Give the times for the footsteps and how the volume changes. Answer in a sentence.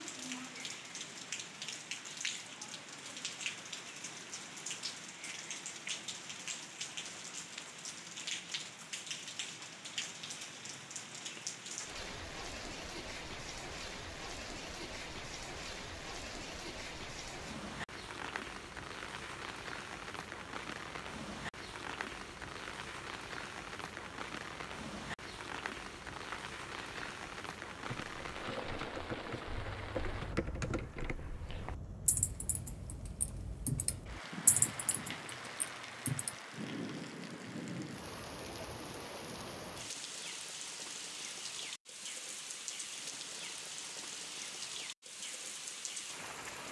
The footsteps can't be heard in this clip.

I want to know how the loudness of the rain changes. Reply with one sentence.
The loudness of the rain stays about the same.